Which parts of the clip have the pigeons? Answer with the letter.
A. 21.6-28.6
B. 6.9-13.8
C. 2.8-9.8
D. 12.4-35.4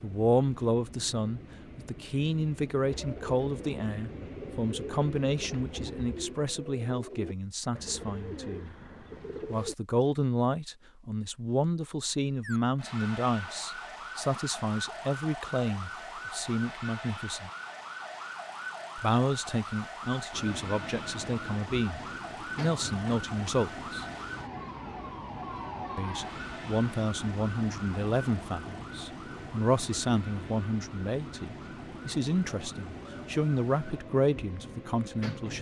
C.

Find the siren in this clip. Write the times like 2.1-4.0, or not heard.
12.4-35.4.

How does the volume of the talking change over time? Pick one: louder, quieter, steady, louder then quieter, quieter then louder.
steady.